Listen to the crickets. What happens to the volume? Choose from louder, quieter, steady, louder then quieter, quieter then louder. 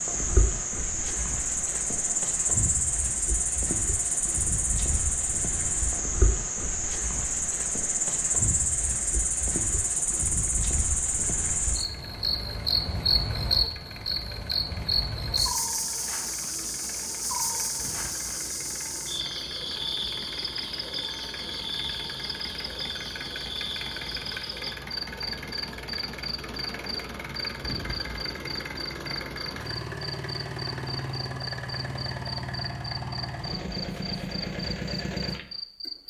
quieter.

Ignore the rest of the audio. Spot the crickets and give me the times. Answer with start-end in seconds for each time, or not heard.
0.0-36.0.